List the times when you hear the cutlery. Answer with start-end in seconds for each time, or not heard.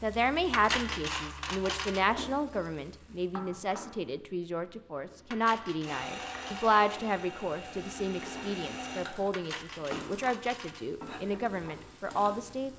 0.5-2.0, 5.3-6.8, 9.3-10.8.